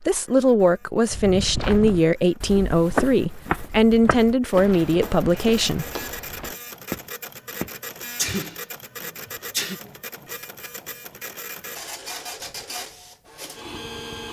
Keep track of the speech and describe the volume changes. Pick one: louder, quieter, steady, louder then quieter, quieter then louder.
steady.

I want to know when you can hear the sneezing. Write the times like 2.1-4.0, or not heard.
8.2-9.8.